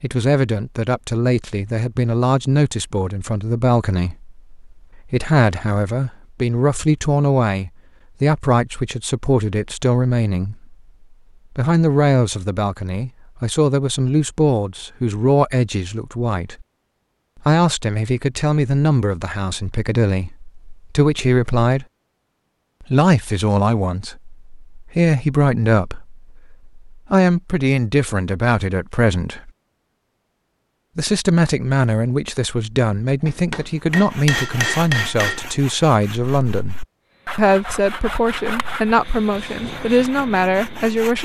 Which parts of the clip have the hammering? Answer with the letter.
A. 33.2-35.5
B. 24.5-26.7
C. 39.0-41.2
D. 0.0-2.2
A.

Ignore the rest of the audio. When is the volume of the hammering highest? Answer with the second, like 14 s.
35 s.